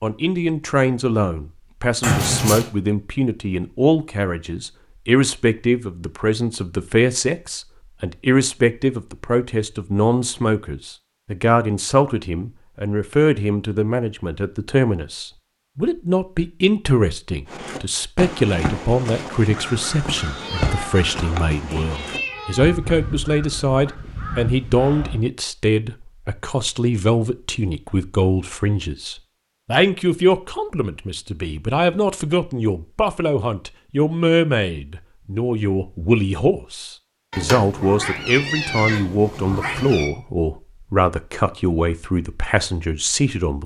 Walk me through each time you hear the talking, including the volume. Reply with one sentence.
You can hear the talking from 0.0 to 43.6 s, at a steady volume.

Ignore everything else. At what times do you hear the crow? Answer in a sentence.
You can hear the crow from 17.4 to 25.2 s.